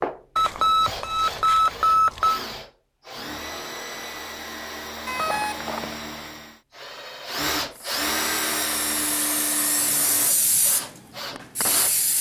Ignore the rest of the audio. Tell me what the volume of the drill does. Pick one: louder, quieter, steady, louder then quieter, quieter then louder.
louder then quieter.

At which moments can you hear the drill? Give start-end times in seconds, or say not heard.
0.0-12.1.